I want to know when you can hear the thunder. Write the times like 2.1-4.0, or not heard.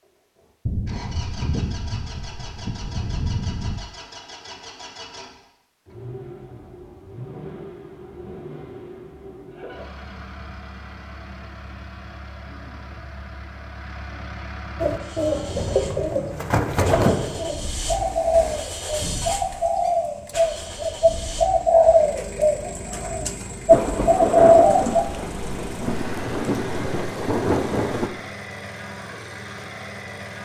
0.7-3.9, 23.7-28.1.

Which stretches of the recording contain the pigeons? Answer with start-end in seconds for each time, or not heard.
14.8-25.1.